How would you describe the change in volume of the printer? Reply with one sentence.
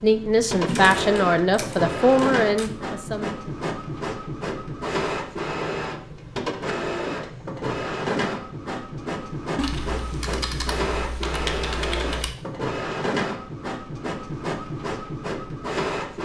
The loudness of the printer stays about the same.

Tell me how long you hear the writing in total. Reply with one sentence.
The writing can't be heard in this clip.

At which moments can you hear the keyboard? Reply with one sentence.
The keyboard can be heard from 0.7 to 2.7 s and from 9.6 to 12.3 s.